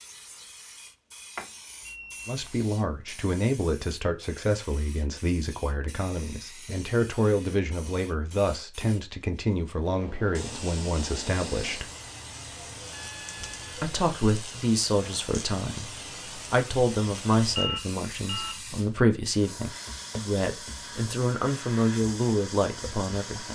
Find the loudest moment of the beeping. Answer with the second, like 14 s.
18 s.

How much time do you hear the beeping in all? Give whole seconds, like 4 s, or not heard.
3 s.